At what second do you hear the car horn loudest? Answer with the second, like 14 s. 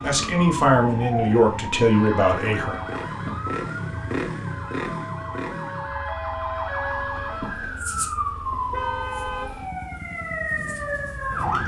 9 s.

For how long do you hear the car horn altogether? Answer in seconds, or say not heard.
3 s.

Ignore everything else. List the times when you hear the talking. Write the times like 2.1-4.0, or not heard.
0.0-2.8.